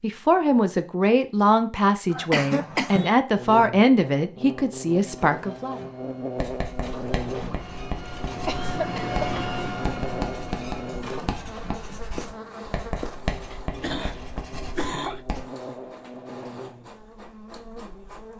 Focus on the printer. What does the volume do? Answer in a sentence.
The volume of the printer goes up, then down.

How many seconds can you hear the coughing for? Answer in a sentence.
You can hear the coughing for 4 seconds altogether.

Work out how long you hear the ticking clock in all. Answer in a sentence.
You can't hear the ticking clock here.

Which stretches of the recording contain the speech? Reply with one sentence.
You can hear the speech from 0.0 to 5.8 s.